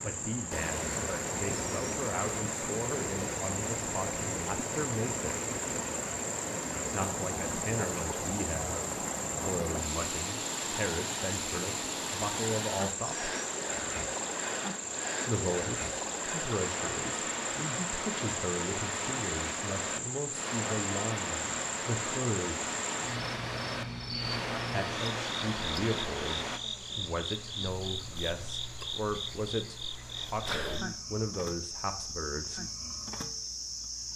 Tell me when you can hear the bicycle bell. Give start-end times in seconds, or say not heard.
not heard.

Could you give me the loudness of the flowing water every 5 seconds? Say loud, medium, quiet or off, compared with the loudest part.
loud, loud, loud, loud, loud, loud, off.